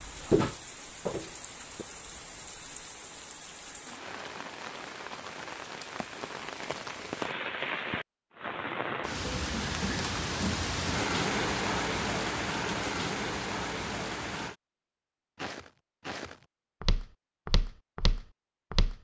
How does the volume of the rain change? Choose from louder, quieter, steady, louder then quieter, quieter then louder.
louder.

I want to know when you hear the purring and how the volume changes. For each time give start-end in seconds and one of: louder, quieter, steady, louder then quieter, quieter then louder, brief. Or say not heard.
not heard.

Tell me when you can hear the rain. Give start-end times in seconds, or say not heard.
0.0-14.6.